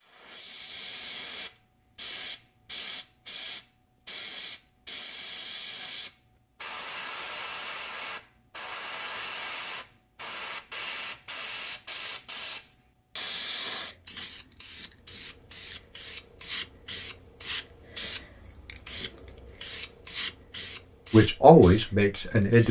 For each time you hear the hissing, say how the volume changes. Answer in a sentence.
You can hear the hissing from 0.1 to 22.6 s, at a steady volume.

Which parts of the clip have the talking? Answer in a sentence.
The talking can be heard from 21.1 to 22.6 s.